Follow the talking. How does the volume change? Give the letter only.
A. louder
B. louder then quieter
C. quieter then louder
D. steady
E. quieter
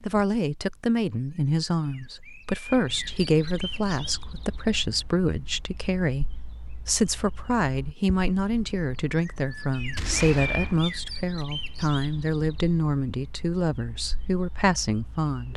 D.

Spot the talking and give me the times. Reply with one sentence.
You can hear the talking from 0.0 to 15.5 s.